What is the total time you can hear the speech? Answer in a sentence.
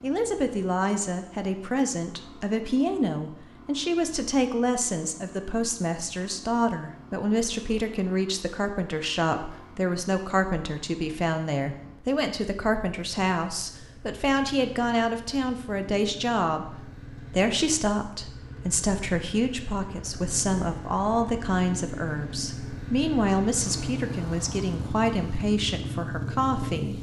You can hear the speech for 27 seconds altogether.